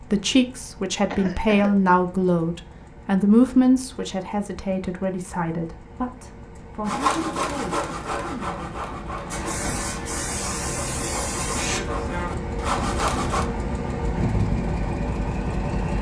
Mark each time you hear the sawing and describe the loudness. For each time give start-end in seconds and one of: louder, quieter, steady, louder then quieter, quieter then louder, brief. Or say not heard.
6.8-13.4 quieter then louder.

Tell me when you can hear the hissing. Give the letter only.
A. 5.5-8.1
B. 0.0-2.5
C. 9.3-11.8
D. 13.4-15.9
C.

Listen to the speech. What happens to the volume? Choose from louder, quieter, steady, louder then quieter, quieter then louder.
quieter.